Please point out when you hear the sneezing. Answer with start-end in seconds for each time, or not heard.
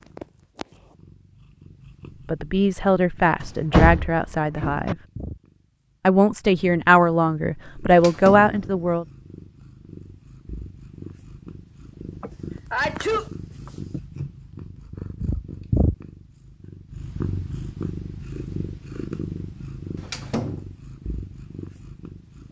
12.2-13.7.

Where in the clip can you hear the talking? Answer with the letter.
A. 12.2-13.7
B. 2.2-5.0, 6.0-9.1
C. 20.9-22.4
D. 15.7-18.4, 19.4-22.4
B.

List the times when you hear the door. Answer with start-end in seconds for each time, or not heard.
3.4-5.0, 7.9-8.9, 19.9-20.6.